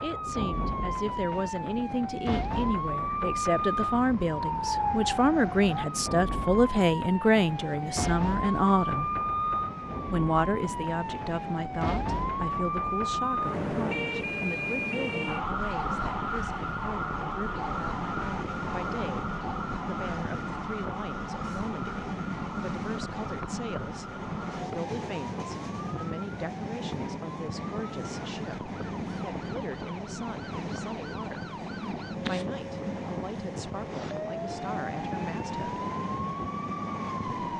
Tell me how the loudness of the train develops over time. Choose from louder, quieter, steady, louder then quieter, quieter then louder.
louder.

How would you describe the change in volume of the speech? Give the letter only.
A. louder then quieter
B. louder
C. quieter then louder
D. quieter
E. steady
D.